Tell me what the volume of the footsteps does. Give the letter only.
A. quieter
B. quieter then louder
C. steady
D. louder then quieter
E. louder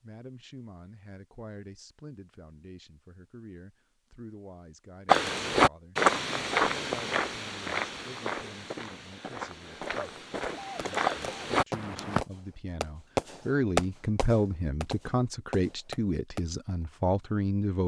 B.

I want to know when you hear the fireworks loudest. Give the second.
14 s.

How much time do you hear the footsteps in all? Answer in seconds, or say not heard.
7 s.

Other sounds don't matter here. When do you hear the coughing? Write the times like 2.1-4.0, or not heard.
9.9-11.5.